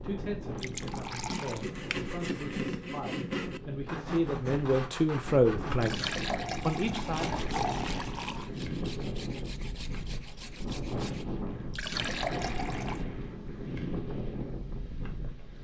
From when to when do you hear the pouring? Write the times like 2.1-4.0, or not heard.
0.6-1.6, 5.8-8.5, 11.7-13.1.